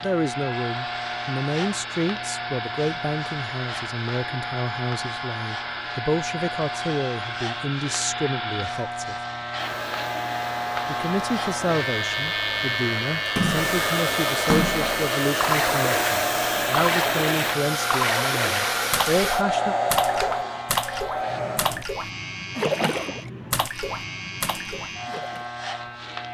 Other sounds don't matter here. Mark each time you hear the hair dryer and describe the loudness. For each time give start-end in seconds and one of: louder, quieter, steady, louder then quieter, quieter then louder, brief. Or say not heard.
0.1-21.9 louder.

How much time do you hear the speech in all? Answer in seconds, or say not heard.
18 s.